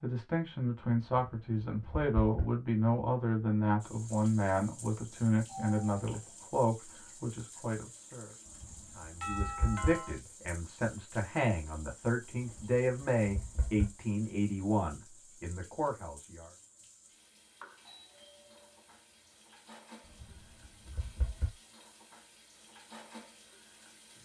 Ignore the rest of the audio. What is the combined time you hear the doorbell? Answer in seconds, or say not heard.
3 s.